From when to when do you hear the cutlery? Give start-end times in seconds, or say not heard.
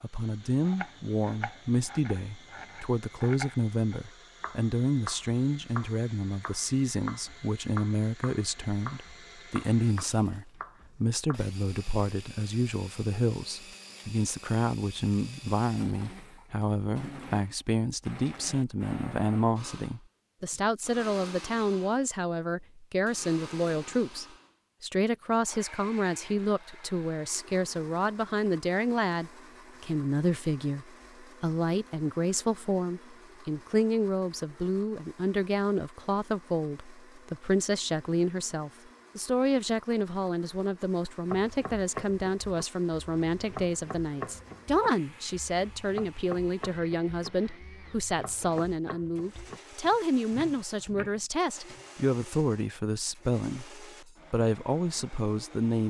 not heard.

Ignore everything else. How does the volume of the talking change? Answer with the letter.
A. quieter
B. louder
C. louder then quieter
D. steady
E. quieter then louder
D.